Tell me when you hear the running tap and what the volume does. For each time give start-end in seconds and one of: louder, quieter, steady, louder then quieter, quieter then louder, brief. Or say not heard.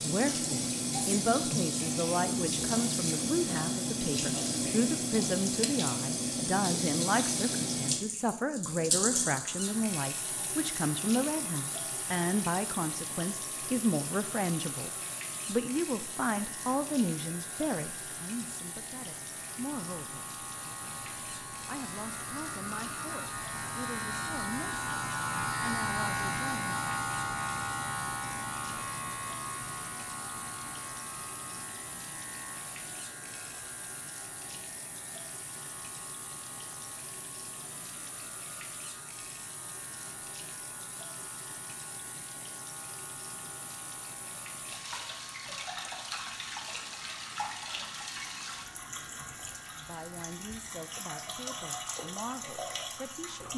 0.0-53.5 quieter then louder.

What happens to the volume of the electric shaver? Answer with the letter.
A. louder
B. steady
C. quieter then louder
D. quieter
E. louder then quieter
E.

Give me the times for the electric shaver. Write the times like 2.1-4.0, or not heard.
9.0-53.5.